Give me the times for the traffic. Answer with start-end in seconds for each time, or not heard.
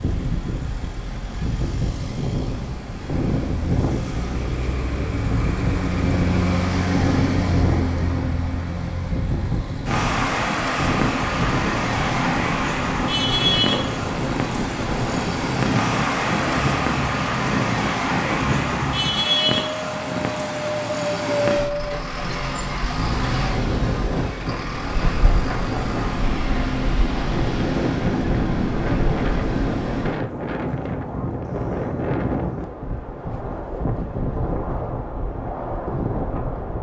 0.0-30.2.